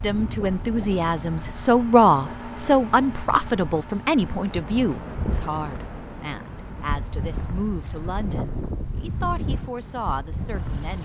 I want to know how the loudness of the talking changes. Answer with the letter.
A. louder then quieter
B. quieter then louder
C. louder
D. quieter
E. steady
D.